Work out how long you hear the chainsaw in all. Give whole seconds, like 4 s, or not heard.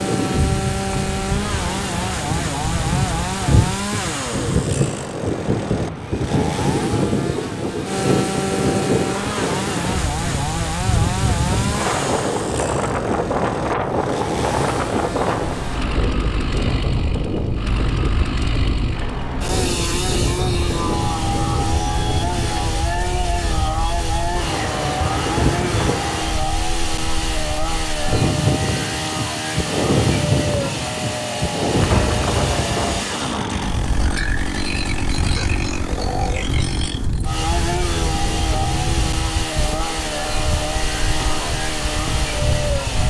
43 s.